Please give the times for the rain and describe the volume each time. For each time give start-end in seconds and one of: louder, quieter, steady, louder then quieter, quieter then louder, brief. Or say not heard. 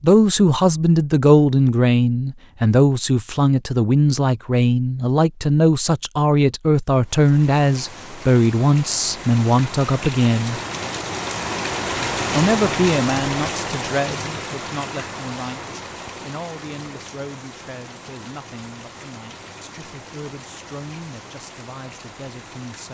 7.0-22.8 louder then quieter.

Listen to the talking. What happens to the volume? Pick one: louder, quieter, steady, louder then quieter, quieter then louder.
quieter.